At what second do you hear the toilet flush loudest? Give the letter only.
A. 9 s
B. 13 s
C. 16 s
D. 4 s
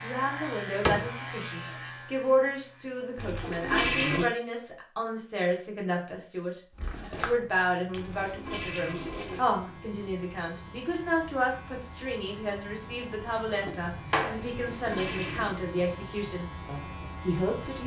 D.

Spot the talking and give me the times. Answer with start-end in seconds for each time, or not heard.
0.0-17.8.